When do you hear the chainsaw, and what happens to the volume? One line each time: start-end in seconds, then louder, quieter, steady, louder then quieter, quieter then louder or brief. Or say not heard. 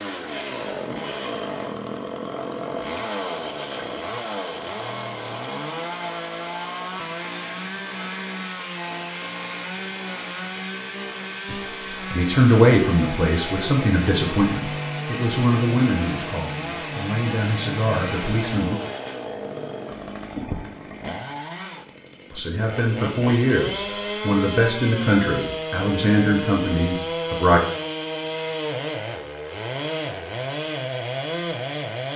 0.0-32.1 steady.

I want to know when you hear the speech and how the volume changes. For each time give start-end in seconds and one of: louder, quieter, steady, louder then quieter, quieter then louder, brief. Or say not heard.
11.5-18.8 quieter
22.3-27.6 steady.